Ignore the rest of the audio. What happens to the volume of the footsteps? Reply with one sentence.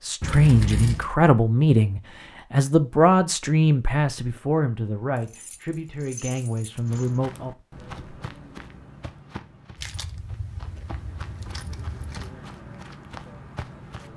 The loudness of the footsteps goes down, then up.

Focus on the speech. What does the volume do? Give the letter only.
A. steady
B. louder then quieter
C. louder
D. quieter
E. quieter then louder
D.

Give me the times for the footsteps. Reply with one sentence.
You can hear the footsteps from 6.7 to 14.1 s.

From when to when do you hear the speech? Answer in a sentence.
The speech can be heard from 0.0 to 7.5 s.